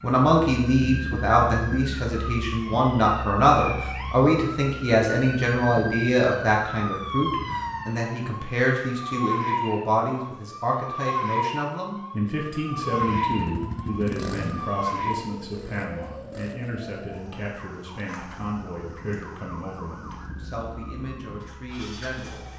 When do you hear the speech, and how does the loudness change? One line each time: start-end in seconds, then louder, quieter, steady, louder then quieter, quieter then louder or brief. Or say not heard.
0.0-22.4 quieter.